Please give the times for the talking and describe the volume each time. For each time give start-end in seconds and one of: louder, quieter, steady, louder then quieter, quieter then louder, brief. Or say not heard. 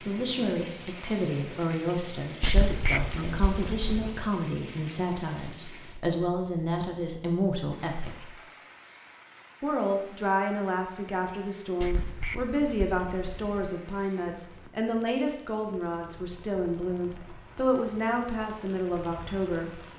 0.0-8.3 steady
9.6-19.8 steady.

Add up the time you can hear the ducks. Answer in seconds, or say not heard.
4 s.